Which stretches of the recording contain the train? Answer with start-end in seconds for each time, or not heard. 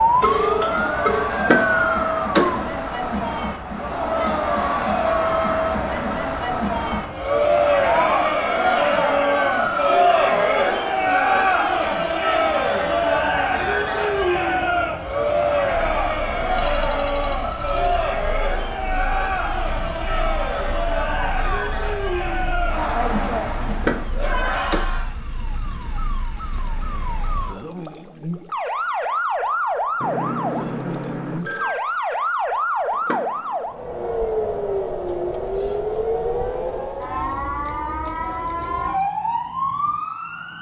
not heard.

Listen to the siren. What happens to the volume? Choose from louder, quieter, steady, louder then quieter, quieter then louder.
quieter then louder.